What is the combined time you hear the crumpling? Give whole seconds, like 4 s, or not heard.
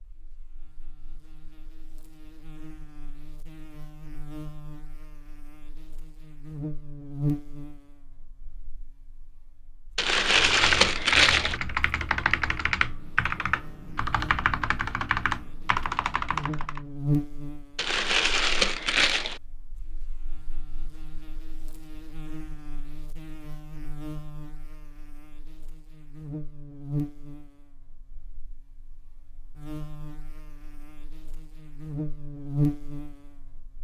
3 s.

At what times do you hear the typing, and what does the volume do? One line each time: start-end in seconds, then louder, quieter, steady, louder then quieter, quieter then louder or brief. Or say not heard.
10.2-16.8 steady.